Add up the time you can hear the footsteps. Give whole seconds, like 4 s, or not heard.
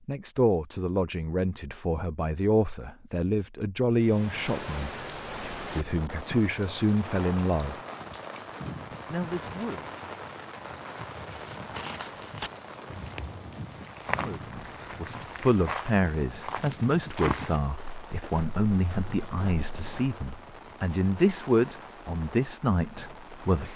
9 s.